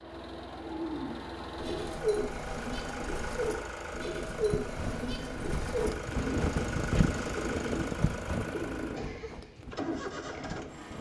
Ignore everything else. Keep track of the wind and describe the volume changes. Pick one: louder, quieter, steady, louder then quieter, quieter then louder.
louder then quieter.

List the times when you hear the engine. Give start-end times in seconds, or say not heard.
0.0-10.9.